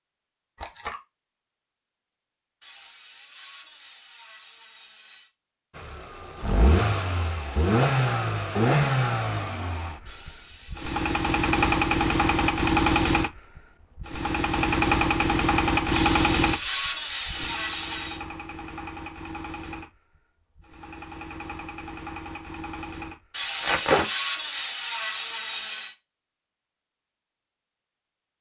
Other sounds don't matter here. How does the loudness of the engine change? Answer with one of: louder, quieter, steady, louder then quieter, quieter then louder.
quieter.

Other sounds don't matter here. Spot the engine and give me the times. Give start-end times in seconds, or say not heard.
5.8-23.4.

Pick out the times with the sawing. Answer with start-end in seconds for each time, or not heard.
2.6-5.3, 10.1-11.8, 15.9-18.2, 23.3-25.9.